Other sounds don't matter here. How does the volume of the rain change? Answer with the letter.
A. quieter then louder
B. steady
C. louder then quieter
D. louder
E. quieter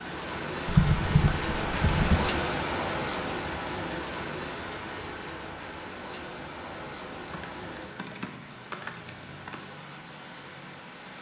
E.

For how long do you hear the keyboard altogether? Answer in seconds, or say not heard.
4 s.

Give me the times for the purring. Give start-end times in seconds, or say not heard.
not heard.